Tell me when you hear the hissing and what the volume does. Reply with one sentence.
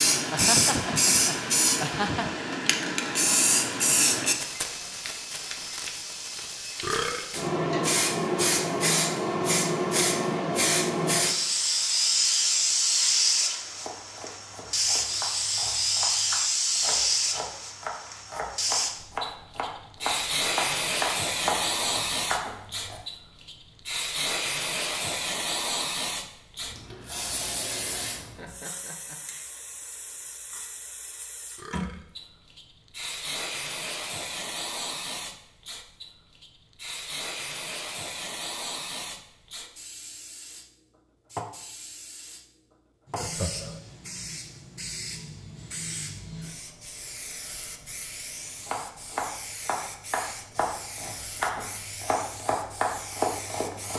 You can hear the hissing from 0.0 to 53.9 s, getting quieter.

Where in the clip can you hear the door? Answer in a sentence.
You can't hear the door here.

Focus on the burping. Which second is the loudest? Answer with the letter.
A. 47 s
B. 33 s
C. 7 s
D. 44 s
C.